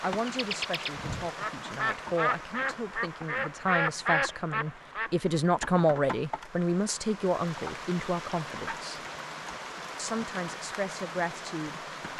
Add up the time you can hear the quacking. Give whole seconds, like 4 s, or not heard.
5 s.